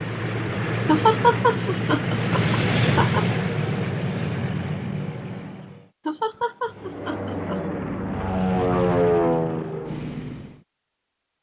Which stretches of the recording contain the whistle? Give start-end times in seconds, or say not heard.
not heard.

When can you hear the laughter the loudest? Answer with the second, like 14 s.
1 s.